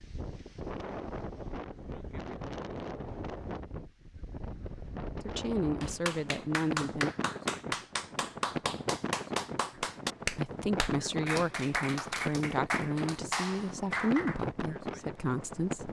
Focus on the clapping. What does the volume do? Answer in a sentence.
The loudness of the clapping stays about the same.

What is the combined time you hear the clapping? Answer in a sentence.
You can hear the clapping for 9 seconds altogether.